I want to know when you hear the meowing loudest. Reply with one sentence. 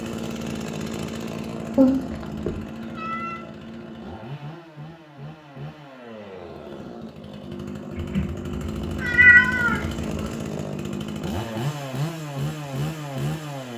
The loudest moment of the meowing is at 9 seconds.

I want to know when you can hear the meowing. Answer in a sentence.
The meowing can be heard from 1.8 to 3.4 s and from 8.0 to 10.2 s.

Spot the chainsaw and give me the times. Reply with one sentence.
You can hear the chainsaw from 0.0 to 13.7 s.